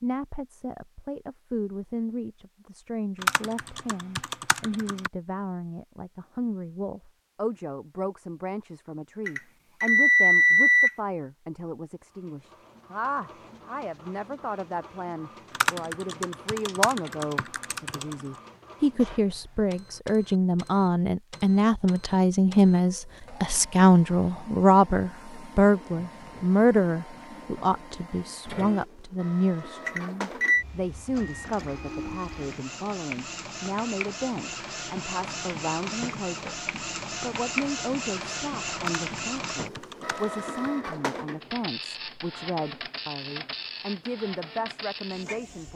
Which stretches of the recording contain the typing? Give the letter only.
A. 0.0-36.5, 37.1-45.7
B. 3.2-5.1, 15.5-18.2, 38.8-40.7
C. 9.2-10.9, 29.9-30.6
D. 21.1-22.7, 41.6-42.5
B.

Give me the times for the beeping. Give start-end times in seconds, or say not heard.
9.2-10.9, 29.9-30.6.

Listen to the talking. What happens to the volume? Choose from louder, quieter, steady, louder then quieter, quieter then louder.
louder then quieter.